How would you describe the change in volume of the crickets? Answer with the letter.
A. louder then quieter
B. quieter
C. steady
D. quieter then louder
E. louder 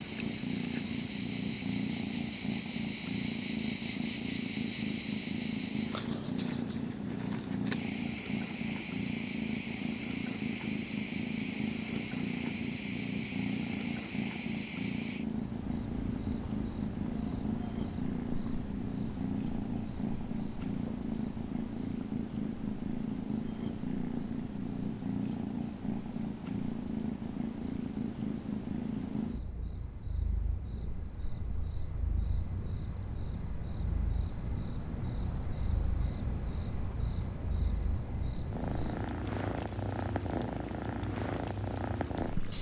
D.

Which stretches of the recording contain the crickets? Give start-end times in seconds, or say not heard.
0.0-42.5.